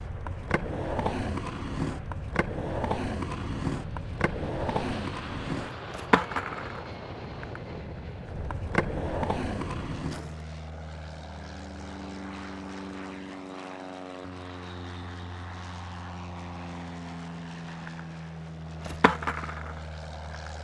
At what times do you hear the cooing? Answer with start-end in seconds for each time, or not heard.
not heard.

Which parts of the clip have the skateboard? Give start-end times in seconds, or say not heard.
0.0-10.3, 17.2-20.5.